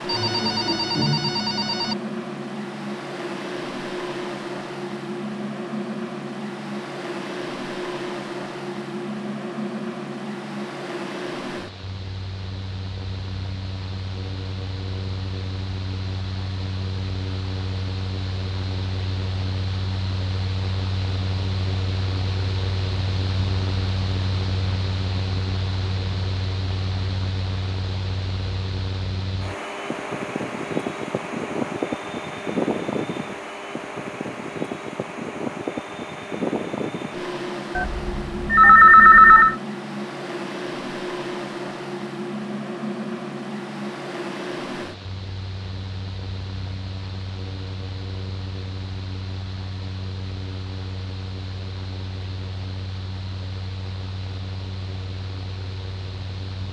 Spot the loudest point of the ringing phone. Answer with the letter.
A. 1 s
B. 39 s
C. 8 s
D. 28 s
B.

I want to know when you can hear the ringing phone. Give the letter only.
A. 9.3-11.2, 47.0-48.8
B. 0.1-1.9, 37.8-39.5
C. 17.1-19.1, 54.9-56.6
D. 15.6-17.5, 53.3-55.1
B.